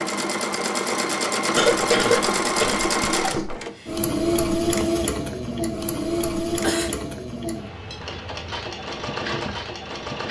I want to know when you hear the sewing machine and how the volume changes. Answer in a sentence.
The sewing machine can be heard from 0.0 to 10.2 s, getting quieter.